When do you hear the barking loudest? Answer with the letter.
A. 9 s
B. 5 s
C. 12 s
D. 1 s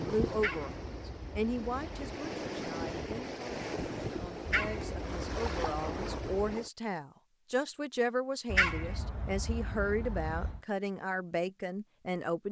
A.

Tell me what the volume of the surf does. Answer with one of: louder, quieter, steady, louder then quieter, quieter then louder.
louder.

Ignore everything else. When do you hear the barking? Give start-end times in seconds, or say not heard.
0.3-2.2, 4.5-6.4, 8.5-10.6.